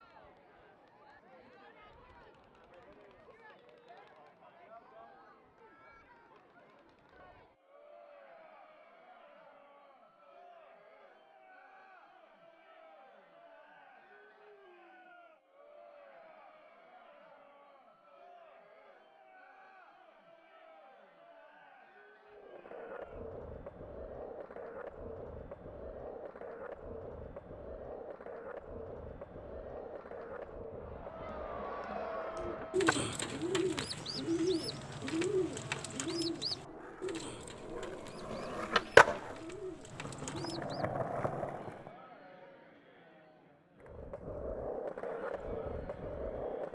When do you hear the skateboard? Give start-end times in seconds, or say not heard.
22.3-42.0, 43.8-46.6.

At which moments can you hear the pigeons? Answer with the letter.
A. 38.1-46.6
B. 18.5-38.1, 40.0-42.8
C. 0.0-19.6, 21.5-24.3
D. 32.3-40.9
D.